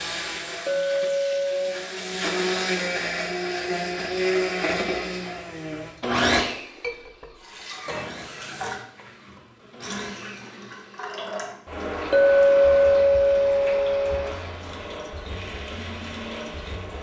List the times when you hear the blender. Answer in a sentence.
The blender can be heard from 0.0 to 16.9 s.